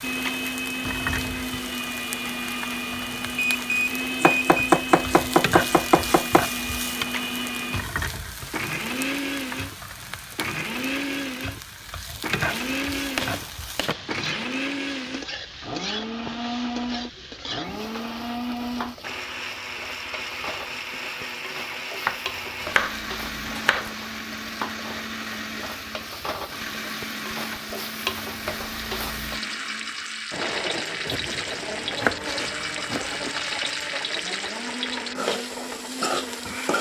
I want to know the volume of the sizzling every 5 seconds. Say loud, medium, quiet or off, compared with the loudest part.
medium, loud, medium, medium, medium, medium, loud, loud.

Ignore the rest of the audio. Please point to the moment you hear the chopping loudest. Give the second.
5 s.